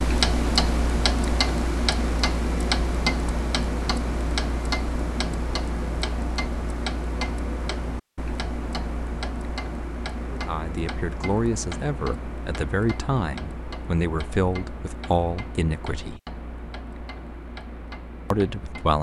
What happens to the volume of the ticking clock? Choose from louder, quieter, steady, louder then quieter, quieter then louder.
quieter.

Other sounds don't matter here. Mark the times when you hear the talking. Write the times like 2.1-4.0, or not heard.
10.3-16.2, 18.3-18.9.